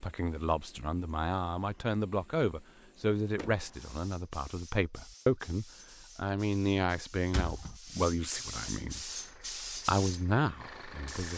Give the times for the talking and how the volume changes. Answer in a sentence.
The talking can be heard from 0.0 to 11.3 s, at a steady volume.